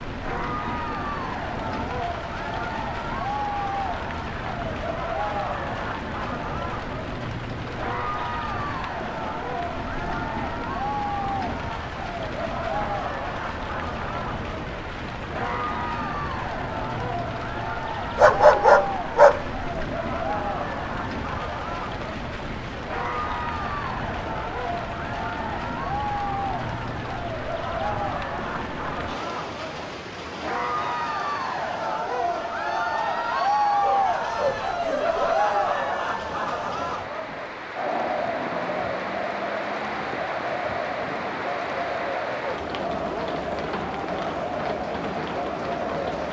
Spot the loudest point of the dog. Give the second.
19 s.